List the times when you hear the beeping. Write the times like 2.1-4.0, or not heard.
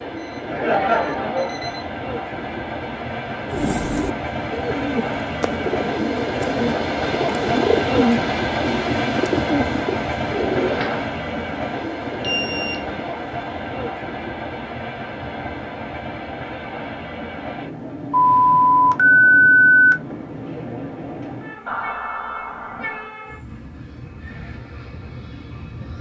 0.1-1.9, 12.2-13.1, 18.1-19.9.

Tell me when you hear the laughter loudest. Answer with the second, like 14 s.
1 s.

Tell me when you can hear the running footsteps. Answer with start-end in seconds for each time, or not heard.
not heard.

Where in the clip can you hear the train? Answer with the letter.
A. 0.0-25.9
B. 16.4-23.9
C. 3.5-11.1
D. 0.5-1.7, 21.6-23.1
A.